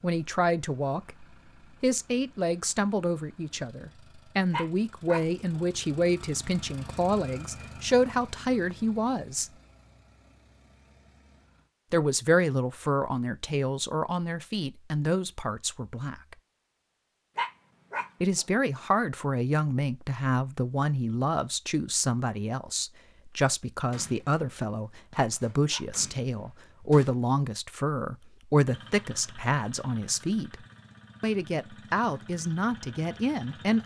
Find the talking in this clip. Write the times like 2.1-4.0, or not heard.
0.0-9.5, 11.9-16.4, 18.2-30.6, 31.2-33.8.